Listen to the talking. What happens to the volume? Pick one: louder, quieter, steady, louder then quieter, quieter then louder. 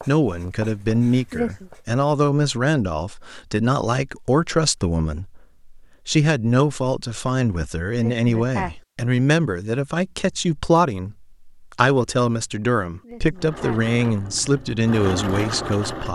steady.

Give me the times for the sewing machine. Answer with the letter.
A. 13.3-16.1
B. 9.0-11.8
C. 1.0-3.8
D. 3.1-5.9
A.